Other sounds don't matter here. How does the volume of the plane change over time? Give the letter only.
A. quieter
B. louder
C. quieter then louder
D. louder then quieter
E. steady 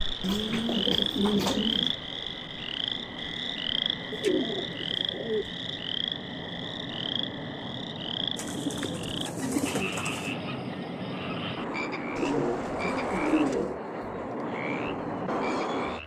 B.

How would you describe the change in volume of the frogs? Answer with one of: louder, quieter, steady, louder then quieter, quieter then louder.
quieter.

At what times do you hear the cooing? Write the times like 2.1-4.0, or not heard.
0.2-1.9, 4.1-5.5, 8.3-10.3, 12.2-13.8.